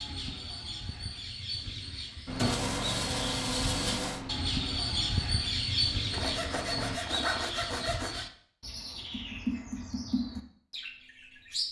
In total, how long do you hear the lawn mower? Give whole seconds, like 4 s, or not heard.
5 s.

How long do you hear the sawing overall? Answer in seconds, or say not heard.
4 s.